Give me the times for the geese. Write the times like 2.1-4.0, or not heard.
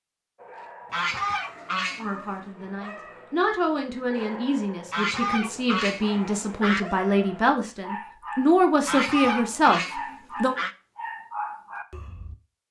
0.9-2.2, 4.9-6.8, 8.8-10.8.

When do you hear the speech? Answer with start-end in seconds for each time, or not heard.
1.9-10.6.